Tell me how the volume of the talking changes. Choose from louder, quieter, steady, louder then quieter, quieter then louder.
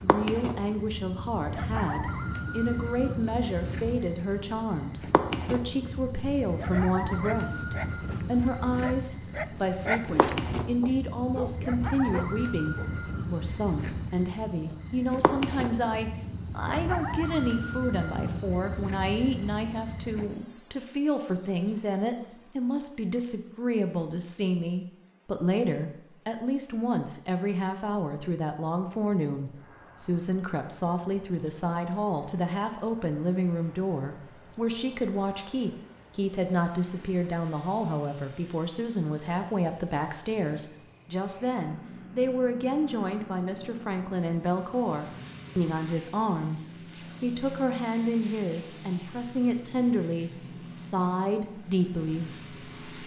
steady.